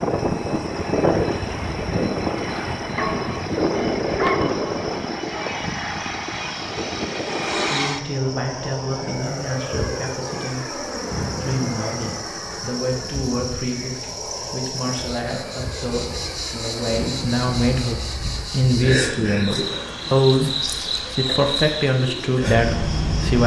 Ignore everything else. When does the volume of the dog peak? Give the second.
4 s.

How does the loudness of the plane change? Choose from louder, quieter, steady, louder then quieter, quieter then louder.
quieter.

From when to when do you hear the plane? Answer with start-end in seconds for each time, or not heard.
0.0-23.4.